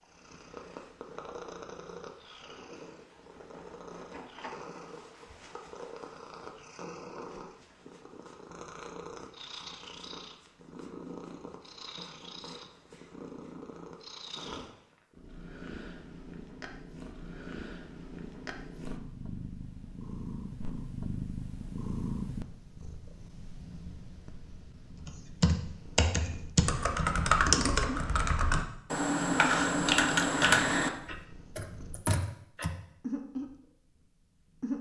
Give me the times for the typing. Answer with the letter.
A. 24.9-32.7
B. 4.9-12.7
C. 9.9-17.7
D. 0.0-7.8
A.